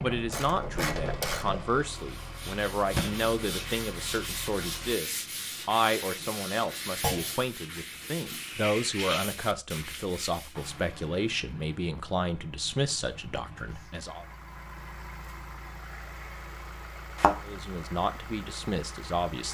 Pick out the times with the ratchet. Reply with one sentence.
The ratchet can be heard from 0.0 to 1.8 s.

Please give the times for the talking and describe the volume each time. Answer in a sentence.
You can hear the talking from 0.0 to 14.2 s, at a steady volume; and briefly from 17.4 to 19.4 s.